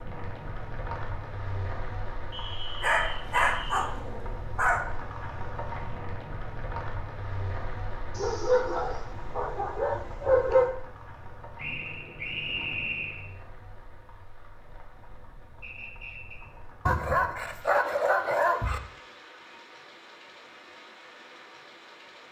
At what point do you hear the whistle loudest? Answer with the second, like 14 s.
13 s.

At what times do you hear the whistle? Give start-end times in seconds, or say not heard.
2.3-3.9, 11.6-13.2, 15.6-16.4.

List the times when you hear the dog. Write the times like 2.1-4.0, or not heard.
2.8-4.8, 8.2-10.8, 16.9-18.8.